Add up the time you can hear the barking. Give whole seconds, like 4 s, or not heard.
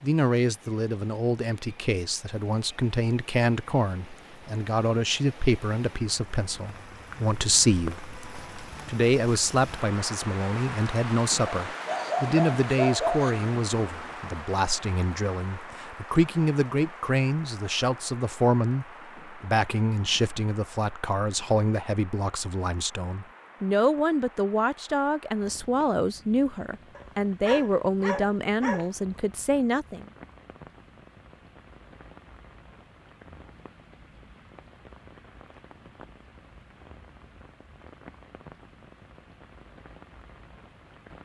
4 s.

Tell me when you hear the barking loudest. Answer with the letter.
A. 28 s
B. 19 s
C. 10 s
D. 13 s
D.